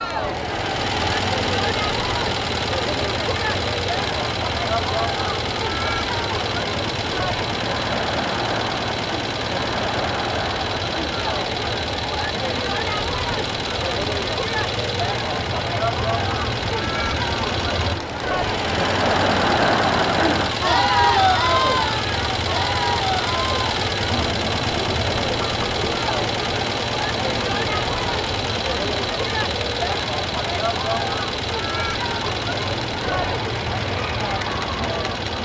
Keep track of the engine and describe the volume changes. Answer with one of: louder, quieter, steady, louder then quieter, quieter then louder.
steady.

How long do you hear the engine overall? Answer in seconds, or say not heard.
35 s.